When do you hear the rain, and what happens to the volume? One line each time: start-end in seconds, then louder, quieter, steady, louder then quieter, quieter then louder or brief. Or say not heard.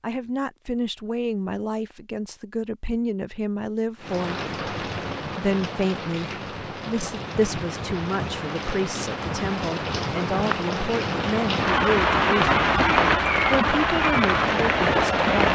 4.0-15.5 louder.